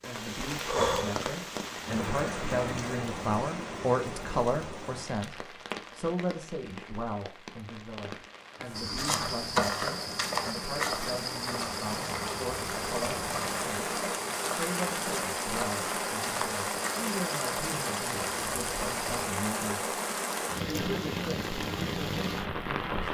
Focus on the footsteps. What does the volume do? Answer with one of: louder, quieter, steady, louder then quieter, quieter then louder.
quieter.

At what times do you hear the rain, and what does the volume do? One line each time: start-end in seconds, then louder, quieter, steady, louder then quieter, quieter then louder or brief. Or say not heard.
0.0-23.0 quieter then louder.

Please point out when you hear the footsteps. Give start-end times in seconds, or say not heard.
8.8-19.2.